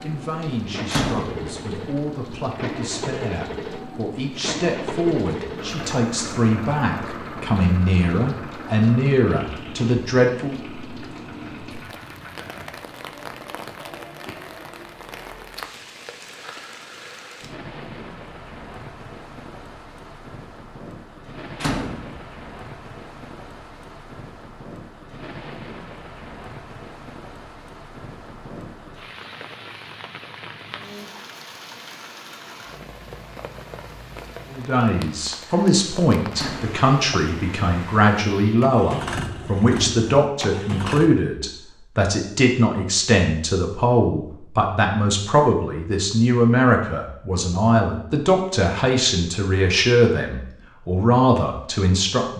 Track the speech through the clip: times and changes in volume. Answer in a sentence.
The speech can be heard from 0.0 to 10.6 s, getting louder; and from 34.5 to 52.3 s, at a steady volume.